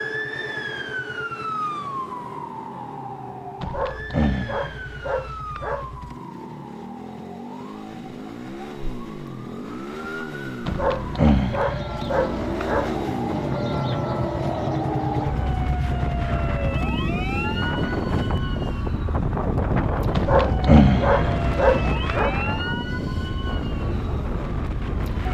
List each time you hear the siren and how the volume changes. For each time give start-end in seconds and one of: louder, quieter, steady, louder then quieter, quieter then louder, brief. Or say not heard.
0.0-25.3 quieter then louder.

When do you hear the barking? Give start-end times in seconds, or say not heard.
3.6-6.0, 10.7-13.0, 20.1-22.4.